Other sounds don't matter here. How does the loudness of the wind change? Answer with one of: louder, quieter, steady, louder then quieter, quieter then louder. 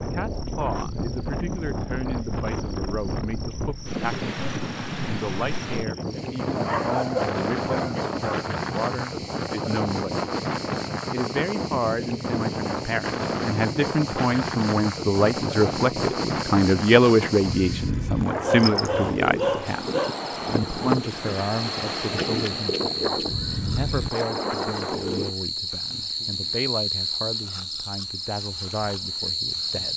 steady.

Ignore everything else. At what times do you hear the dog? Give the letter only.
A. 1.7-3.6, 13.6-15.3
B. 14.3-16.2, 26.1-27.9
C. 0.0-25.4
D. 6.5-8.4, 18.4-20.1
D.